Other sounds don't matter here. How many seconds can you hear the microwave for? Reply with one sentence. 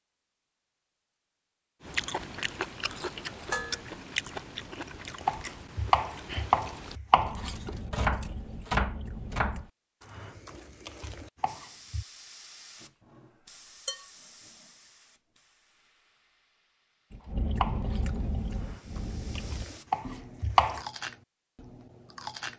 You can't hear the microwave here.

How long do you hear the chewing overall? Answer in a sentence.
The chewing can be heard for 13 seconds in total.